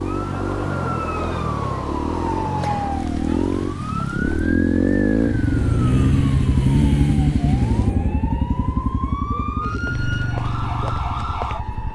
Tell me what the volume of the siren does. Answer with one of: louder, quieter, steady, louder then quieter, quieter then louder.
quieter then louder.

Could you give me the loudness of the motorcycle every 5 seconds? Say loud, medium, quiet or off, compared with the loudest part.
loud, loud, medium.